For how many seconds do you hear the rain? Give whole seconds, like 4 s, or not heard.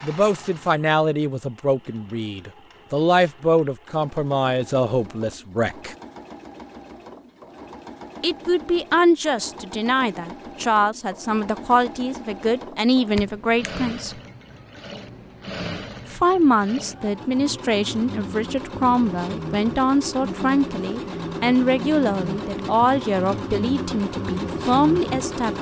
not heard.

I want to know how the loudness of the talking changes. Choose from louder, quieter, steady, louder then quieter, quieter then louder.
steady.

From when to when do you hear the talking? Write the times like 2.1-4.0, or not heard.
0.0-6.0, 8.2-14.2, 16.1-25.5.